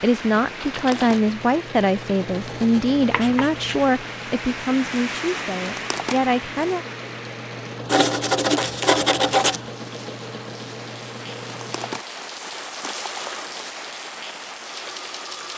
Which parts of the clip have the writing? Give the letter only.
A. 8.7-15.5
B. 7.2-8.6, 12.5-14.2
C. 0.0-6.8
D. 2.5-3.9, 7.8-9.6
D.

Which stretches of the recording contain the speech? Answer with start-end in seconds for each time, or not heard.
0.0-6.8.